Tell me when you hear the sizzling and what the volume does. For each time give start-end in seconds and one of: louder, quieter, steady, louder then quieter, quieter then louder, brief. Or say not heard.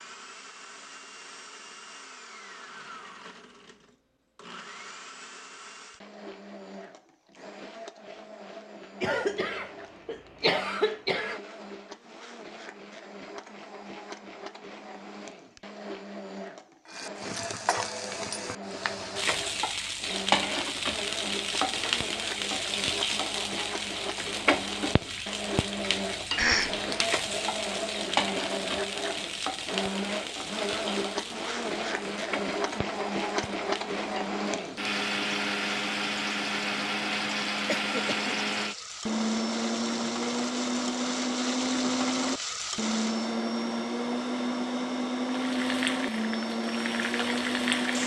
16.9-43.4 quieter then louder
45.2-48.0 brief.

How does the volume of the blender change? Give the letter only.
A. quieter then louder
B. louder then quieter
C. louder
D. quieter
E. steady
C.